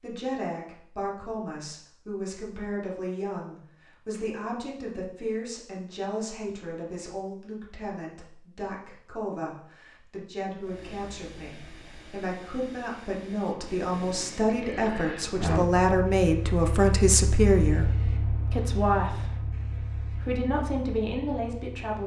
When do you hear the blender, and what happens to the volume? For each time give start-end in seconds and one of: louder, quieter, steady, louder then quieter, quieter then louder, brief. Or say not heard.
not heard.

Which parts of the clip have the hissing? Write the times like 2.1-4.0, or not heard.
10.6-22.0.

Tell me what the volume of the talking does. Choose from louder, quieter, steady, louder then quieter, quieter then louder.
louder.